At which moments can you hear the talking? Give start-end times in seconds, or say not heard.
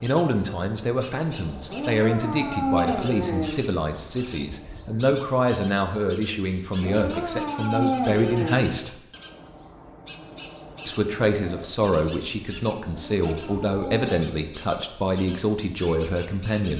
0.0-8.9, 10.8-16.7.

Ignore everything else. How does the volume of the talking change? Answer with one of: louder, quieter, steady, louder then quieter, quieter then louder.
steady.